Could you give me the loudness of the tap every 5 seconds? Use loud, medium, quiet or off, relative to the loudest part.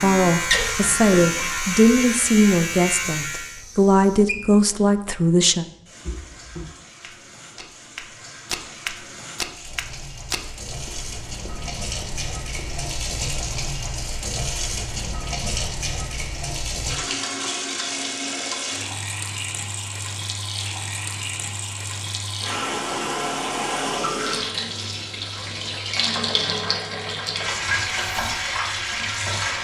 medium, quiet, medium, loud, loud, loud.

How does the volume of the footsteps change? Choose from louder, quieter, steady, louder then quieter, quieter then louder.
louder then quieter.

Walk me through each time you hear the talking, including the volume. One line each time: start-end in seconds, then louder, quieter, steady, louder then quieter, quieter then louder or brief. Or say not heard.
0.0-5.7 steady.